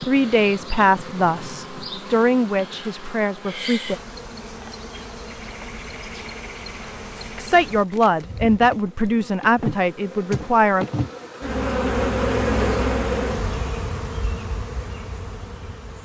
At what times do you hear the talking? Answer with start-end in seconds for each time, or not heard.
0.1-4.0, 7.3-10.8.